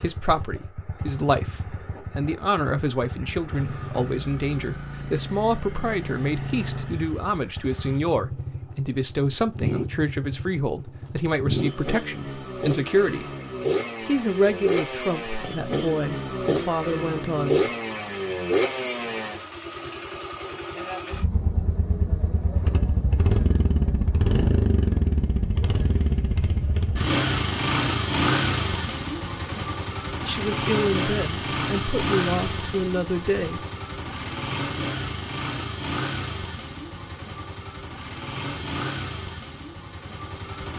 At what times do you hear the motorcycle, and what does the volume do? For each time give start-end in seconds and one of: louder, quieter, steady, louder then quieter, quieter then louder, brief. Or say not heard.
0.0-40.7 louder then quieter.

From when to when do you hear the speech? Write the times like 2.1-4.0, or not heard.
0.0-13.2, 14.0-17.6, 30.2-33.6.